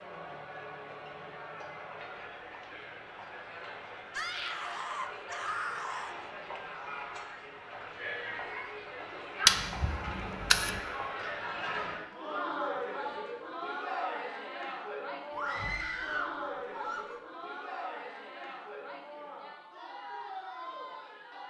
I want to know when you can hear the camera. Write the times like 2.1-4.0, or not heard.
9.4-10.8.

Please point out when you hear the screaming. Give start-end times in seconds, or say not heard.
4.1-6.2, 15.3-17.2.